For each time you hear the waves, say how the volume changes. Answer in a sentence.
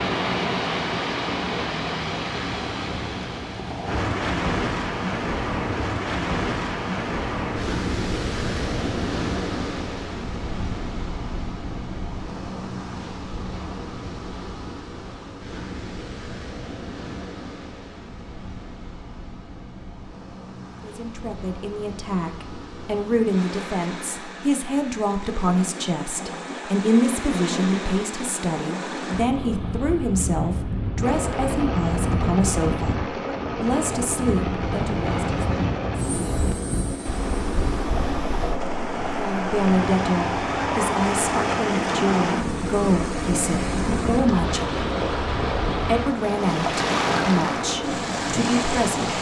You can hear the waves from 0.0 to 49.1 s, getting quieter then louder.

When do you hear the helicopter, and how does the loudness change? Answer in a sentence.
You can hear the helicopter from 31.0 to 49.1 s, at a steady volume.